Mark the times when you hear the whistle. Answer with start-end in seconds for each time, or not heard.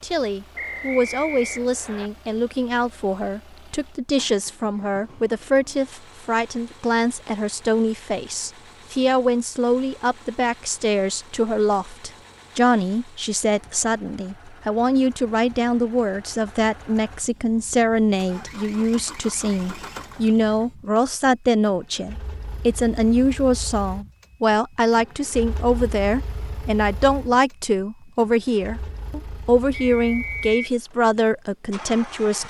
0.6-2.1, 29.9-30.6.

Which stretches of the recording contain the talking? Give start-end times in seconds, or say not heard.
0.0-32.4.